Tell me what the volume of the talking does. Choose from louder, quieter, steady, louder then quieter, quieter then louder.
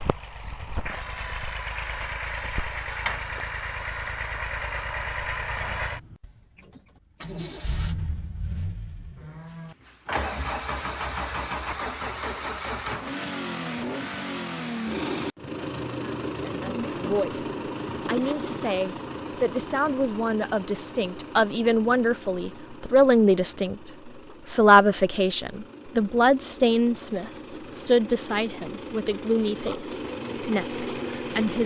louder then quieter.